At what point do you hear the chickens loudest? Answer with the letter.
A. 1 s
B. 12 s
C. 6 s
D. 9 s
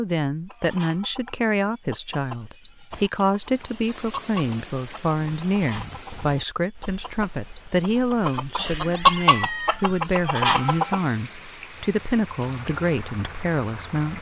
D.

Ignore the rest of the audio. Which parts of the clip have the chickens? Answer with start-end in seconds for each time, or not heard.
0.5-11.0.